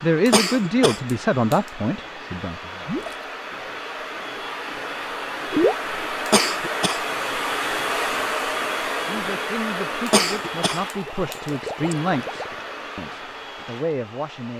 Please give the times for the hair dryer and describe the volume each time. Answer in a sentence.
The hair dryer can be heard from 0.0 to 14.5 s, getting louder then quieter.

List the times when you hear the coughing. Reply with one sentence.
You can hear the coughing from 0.2 to 1.6 s, from 6.2 to 7.0 s and from 10.1 to 11.9 s.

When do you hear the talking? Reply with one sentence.
You can hear the talking from 0.0 to 2.7 s and from 9.1 to 14.5 s.